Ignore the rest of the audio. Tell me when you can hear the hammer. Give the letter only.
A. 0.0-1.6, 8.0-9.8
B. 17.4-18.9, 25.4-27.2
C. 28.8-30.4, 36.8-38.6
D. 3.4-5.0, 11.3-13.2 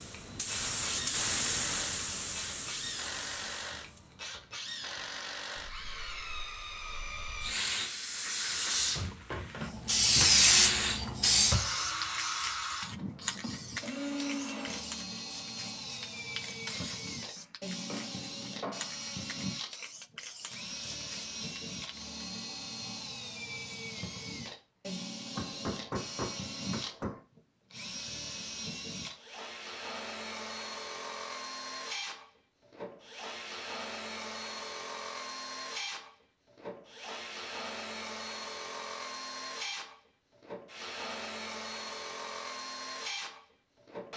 B.